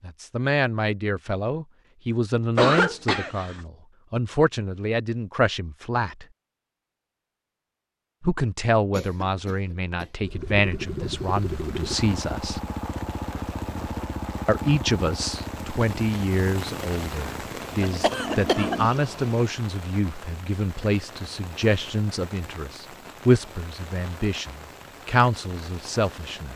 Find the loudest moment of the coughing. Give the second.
3 s.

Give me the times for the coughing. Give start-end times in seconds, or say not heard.
2.5-3.6, 8.9-10.1, 17.8-18.8.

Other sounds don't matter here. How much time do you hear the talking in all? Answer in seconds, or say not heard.
23 s.